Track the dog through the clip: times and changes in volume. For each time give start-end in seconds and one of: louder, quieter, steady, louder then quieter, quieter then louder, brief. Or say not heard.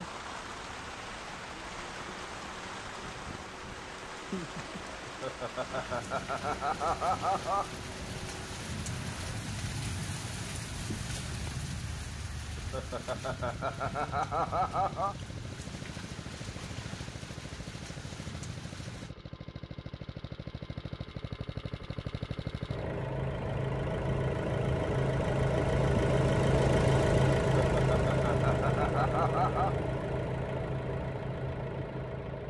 not heard.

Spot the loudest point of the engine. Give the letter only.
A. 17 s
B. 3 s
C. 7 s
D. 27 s
D.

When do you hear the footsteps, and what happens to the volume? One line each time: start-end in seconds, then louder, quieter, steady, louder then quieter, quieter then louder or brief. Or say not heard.
not heard.